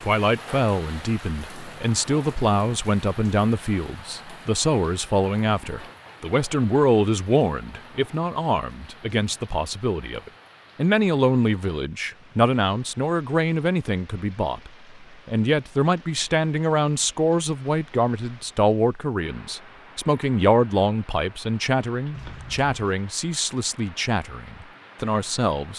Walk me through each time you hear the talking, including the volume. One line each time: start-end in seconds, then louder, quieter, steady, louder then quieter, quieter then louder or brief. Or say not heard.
0.0-25.7 steady.